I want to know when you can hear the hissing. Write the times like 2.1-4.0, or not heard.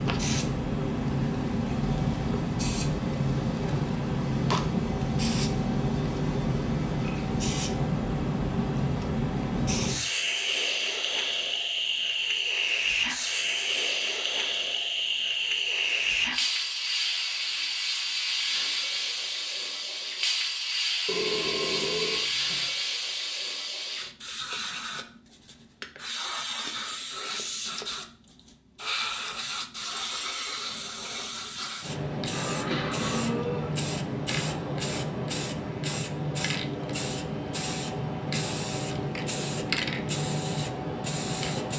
0.0-41.7.